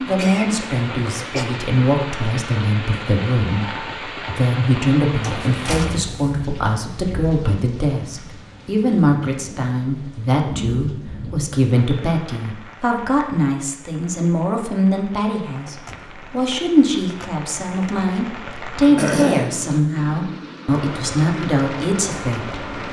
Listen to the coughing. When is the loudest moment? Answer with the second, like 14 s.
19 s.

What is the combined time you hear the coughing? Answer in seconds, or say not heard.
2 s.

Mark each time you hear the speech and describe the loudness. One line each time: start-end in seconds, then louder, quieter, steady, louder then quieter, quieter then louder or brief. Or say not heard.
0.1-22.6 steady.